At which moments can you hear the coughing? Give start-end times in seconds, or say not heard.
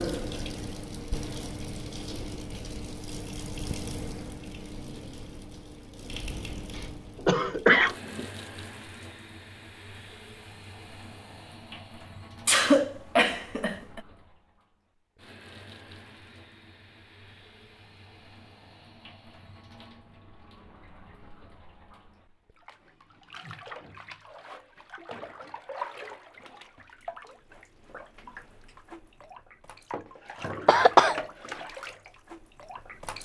6.8-8.2, 12.4-14.0, 30.6-31.1.